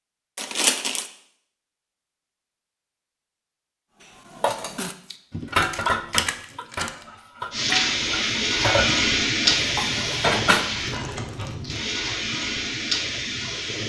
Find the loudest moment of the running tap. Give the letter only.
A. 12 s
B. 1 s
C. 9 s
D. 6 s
C.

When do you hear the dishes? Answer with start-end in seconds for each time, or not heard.
4.3-10.7.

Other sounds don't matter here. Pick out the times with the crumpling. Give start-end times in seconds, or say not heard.
0.3-1.1, 4.8-6.9, 10.8-11.8.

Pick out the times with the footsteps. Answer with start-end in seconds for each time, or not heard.
not heard.